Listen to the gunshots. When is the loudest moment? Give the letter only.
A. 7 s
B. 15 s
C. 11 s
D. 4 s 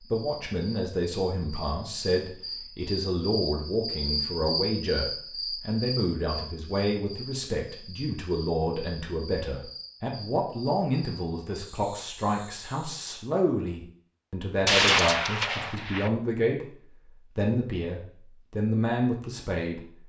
B.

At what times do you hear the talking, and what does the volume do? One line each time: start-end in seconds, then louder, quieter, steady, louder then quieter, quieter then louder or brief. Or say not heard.
0.1-16.6 steady
17.4-19.8 brief.